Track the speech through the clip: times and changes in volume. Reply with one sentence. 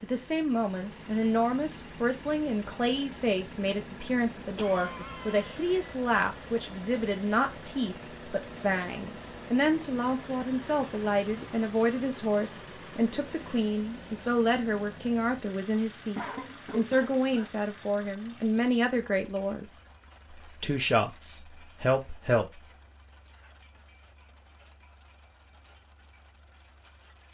You can hear the speech from 0.0 to 22.6 s, at a steady volume.